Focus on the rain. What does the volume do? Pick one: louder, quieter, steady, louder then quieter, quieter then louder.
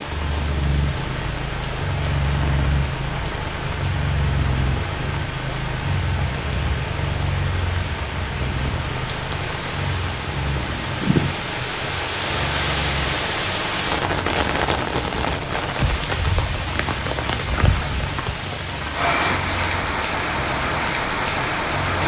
louder.